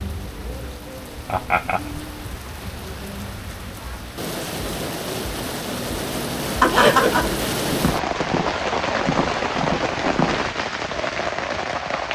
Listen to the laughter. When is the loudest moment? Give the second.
7 s.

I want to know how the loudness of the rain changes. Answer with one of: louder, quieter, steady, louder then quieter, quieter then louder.
louder.